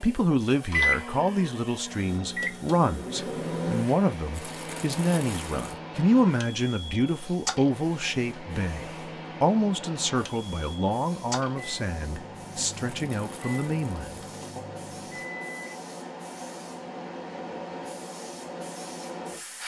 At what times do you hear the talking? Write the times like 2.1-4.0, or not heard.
0.0-14.6.